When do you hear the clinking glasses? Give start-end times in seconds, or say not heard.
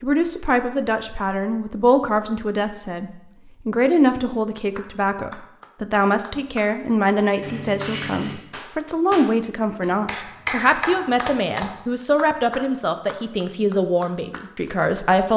7.4-8.4.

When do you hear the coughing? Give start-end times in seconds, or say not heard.
not heard.